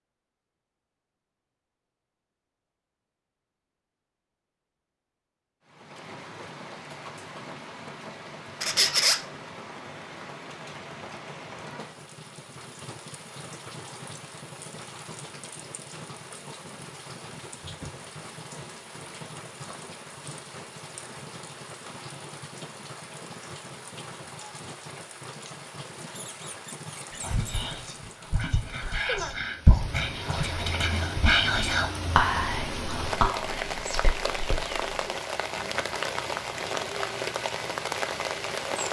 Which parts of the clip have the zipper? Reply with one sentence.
You can't hear the zipper here.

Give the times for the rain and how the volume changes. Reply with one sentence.
The rain can be heard from 5.7 to 38.8 s, getting louder.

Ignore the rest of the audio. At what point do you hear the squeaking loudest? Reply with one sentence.
The loudest moment of the squeaking is at 9 seconds.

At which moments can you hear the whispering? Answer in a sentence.
The whispering can be heard from 27.1 to 34.8 s.